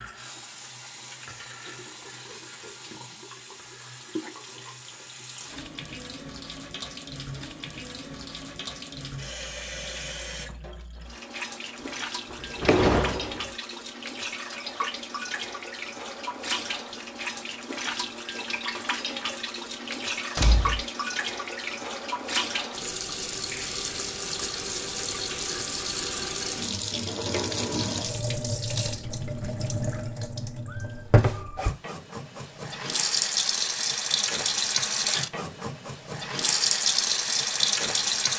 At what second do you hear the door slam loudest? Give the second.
13 s.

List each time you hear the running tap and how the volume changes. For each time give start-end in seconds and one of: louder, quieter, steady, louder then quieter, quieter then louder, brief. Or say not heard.
0.0-38.3 louder.